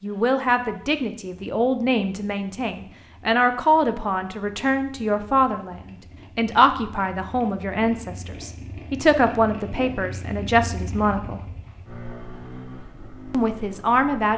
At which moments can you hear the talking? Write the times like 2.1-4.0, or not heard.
0.0-11.4, 13.3-14.3.